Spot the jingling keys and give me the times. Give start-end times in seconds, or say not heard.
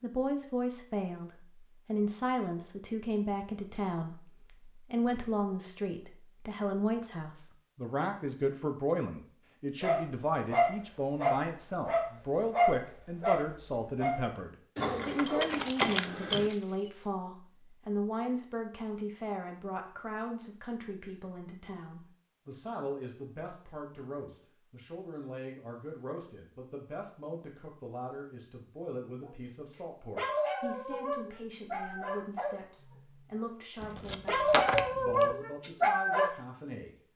14.8-16.5, 33.8-35.3.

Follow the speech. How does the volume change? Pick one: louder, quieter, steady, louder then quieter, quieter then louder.
quieter.